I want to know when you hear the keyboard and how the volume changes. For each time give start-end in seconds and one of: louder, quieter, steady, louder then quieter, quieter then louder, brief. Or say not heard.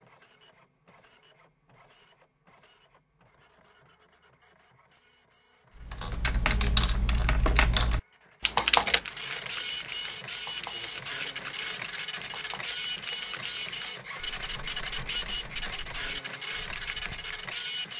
5.8-17.3 quieter.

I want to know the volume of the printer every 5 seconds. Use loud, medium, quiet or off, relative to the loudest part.
quiet, medium, loud, loud.